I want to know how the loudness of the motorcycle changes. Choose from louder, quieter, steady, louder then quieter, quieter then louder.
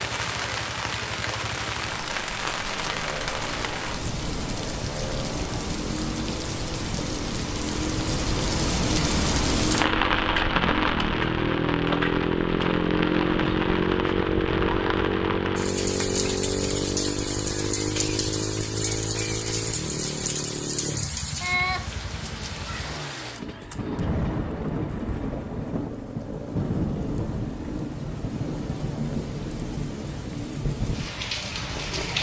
louder then quieter.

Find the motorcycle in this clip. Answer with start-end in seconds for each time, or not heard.
0.0-32.1.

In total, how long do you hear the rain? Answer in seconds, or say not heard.
32 s.